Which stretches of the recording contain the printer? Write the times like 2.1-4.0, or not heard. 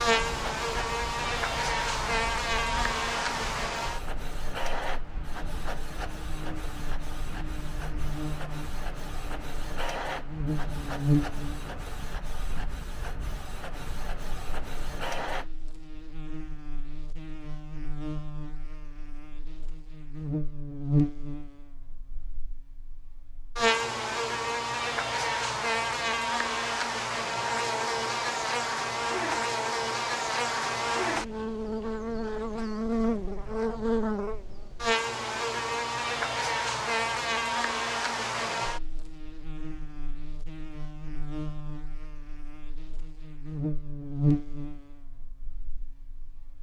0.0-15.5.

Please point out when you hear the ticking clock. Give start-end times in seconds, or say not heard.
not heard.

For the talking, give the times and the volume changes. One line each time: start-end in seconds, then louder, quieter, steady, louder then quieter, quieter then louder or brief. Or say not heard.
not heard.